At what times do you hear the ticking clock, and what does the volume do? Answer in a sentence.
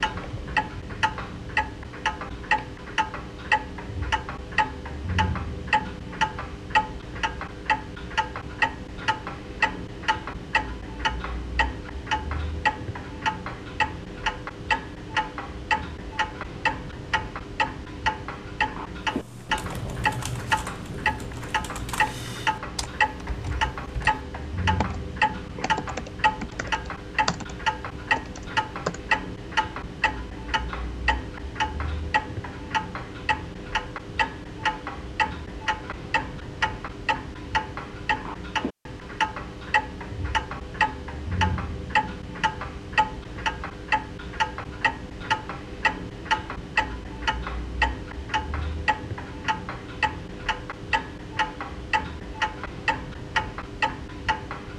The ticking clock can be heard from 0.0 to 54.7 s, at a steady volume.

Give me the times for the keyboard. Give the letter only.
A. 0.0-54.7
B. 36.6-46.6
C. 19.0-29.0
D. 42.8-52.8
C.